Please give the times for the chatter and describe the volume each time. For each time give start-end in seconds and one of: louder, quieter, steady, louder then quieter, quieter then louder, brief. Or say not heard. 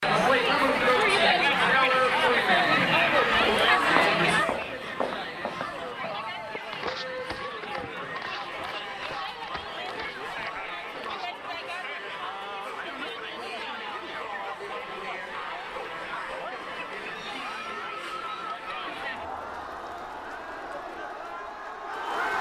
0.0-22.3 quieter.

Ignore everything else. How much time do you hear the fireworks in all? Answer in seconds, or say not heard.
not heard.